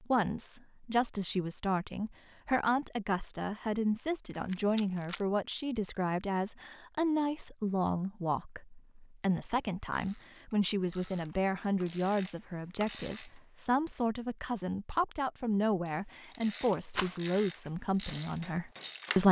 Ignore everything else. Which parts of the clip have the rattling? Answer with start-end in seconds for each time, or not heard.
4.3-5.2, 16.9-17.3.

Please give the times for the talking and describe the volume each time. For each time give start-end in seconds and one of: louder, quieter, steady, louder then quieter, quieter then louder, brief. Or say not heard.
0.0-19.2 steady.